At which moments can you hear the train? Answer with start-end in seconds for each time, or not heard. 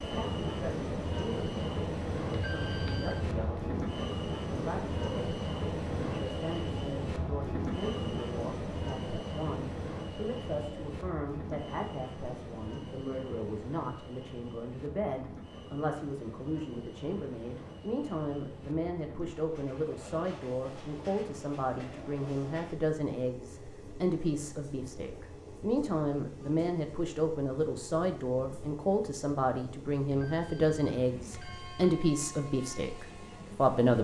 0.0-33.9.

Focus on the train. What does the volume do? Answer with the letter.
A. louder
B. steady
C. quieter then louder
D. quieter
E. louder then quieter
D.